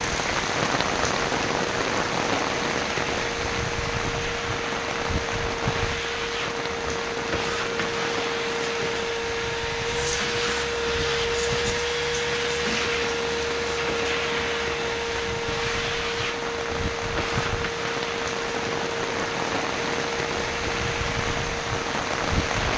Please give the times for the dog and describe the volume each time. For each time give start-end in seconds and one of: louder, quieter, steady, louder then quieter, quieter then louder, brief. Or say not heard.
not heard.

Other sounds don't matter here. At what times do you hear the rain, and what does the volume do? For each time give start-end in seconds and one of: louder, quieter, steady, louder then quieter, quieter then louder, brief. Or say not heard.
0.0-22.7 quieter then louder.